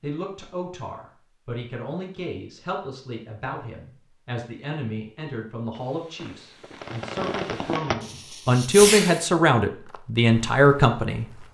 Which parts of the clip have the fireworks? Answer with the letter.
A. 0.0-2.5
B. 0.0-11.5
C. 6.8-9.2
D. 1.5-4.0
C.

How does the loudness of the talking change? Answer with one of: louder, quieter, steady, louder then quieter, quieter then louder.
louder.